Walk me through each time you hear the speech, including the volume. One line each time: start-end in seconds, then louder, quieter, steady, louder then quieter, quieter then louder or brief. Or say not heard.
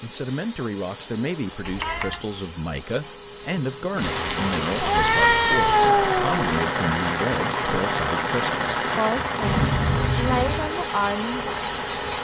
0.0-11.8 steady.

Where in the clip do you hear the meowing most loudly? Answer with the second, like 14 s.
6 s.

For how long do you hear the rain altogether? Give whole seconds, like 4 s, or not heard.
8 s.